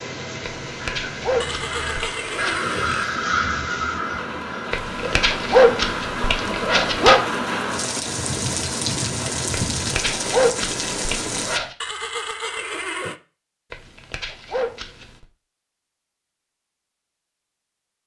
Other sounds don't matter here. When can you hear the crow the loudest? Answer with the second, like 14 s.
3 s.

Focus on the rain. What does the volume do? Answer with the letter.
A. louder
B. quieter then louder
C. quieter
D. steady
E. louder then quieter
A.